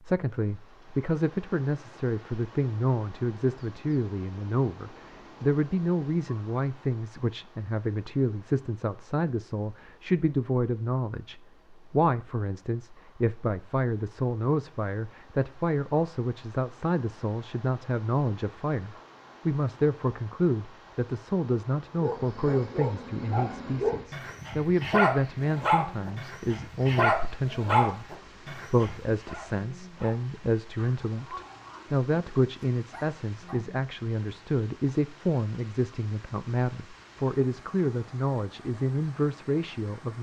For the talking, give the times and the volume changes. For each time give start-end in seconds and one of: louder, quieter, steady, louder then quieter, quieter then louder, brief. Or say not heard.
0.0-40.1 steady.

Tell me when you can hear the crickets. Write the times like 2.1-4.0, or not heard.
not heard.